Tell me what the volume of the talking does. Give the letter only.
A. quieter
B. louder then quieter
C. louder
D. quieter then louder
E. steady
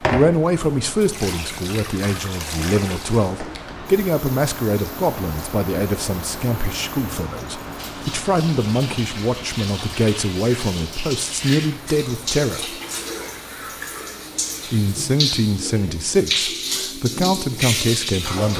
E.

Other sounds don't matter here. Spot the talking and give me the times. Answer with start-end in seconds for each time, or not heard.
0.0-12.8, 14.7-18.5.